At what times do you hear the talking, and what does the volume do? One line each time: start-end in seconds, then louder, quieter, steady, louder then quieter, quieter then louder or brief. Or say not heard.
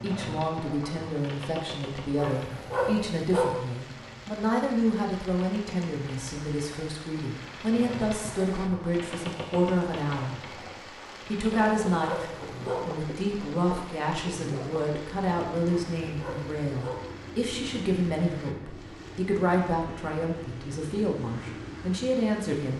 0.0-10.6 steady
11.2-22.7 steady.